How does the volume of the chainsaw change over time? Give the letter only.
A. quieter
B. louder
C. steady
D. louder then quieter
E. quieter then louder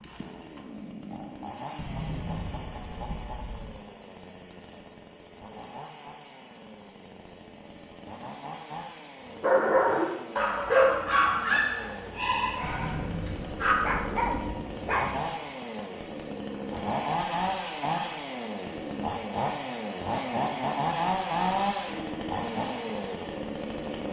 B.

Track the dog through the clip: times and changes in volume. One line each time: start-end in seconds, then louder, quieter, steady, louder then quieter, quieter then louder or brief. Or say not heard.
9.4-15.2 quieter.